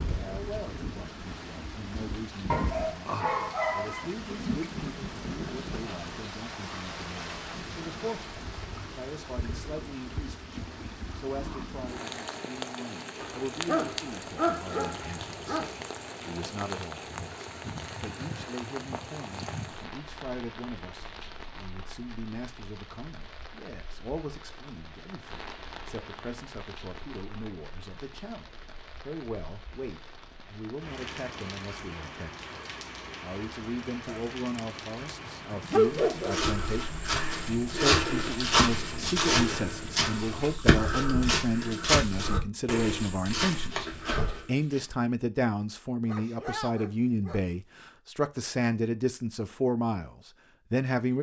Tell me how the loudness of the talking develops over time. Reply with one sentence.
The loudness of the talking goes up.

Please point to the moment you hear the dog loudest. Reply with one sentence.
The loudest moment of the dog is at 36 seconds.